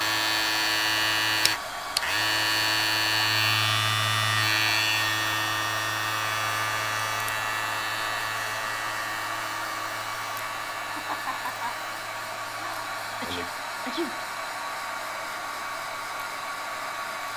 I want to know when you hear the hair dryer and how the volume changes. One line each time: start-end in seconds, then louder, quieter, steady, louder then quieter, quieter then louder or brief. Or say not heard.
0.0-17.3 steady.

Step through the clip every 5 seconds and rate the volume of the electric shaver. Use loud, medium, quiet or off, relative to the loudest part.
loud, medium, quiet, quiet.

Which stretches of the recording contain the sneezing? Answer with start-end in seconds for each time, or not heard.
13.2-14.2.